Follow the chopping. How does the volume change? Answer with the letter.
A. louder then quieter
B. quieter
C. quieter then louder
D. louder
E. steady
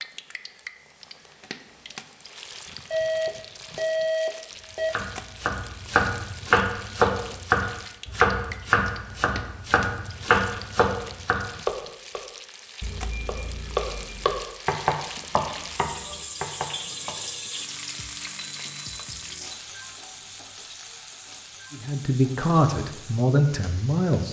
B.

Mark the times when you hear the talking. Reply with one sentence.
You can hear the talking from 21.7 to 24.2 s.